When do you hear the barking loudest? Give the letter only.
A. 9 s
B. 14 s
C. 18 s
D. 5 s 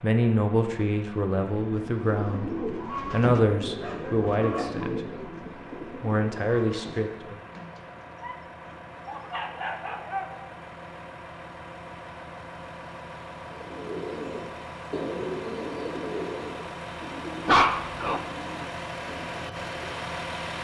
C.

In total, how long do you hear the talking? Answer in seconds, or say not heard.
7 s.